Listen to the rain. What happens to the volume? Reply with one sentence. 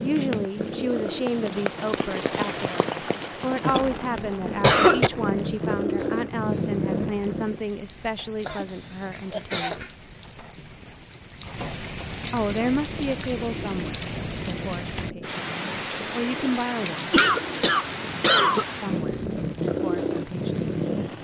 The volume of the rain goes down, then up.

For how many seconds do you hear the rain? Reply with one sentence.
You can hear the rain for 21 seconds altogether.